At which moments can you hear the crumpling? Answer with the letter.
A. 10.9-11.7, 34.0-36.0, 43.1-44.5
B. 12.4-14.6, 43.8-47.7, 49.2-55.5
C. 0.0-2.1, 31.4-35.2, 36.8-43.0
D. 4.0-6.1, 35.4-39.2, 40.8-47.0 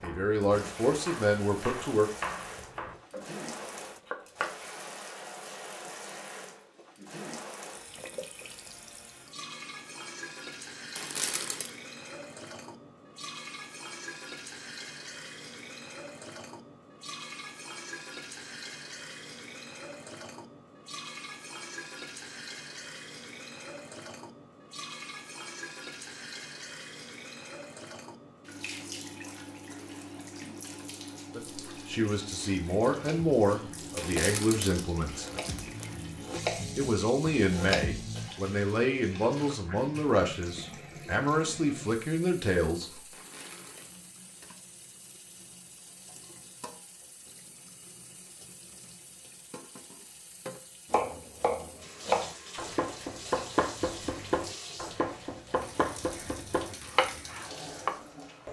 A.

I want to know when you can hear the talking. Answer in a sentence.
The talking can be heard from 0.0 to 2.1 s, from 31.4 to 35.2 s and from 36.8 to 43.0 s.